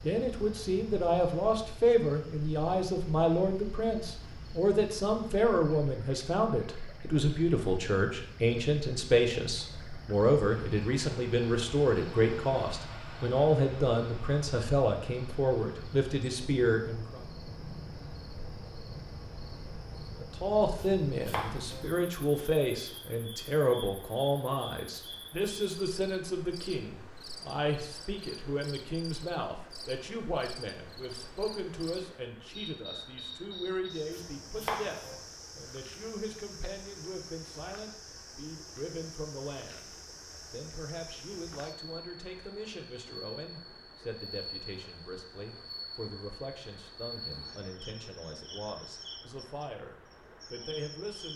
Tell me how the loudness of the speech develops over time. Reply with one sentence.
The loudness of the speech goes down.